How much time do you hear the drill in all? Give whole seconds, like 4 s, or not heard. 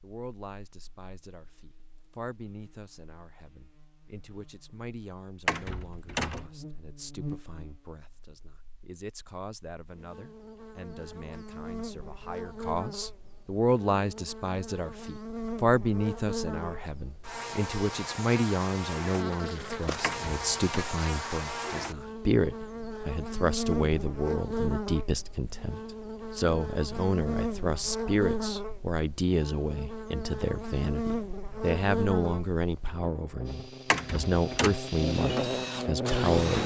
3 s.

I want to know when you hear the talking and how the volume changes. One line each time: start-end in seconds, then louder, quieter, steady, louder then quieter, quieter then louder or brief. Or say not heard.
0.0-36.6 louder.